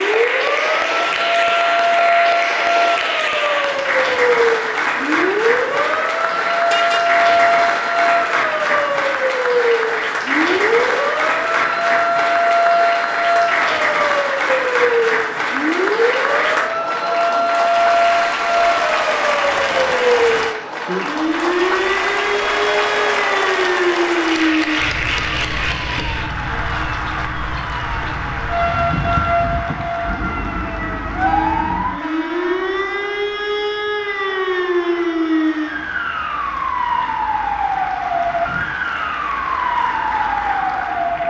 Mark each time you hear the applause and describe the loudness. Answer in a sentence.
You can hear the applause from 0.0 to 41.2 s, getting quieter.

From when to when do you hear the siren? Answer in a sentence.
You can hear the siren from 0.0 to 41.2 s.